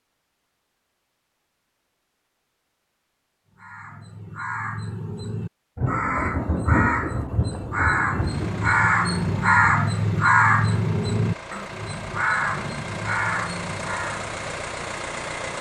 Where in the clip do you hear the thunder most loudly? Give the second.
7 s.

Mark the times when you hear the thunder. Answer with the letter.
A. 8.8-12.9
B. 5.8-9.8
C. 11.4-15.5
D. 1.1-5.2
B.